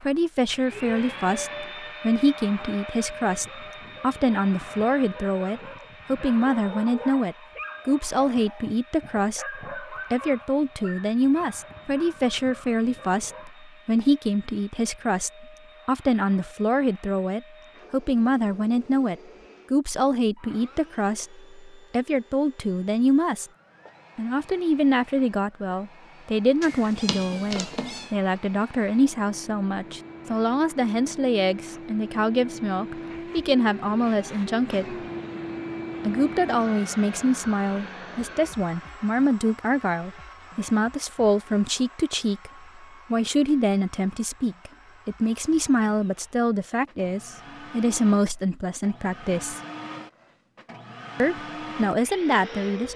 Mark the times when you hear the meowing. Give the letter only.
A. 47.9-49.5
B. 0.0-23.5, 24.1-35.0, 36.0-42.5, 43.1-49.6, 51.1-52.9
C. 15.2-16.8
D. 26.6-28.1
D.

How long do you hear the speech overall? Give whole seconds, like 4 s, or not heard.
49 s.